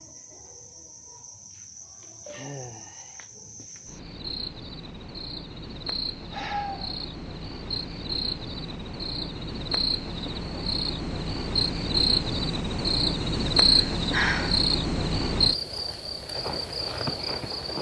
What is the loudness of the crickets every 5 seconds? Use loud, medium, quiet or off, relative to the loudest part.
quiet, medium, loud, loud.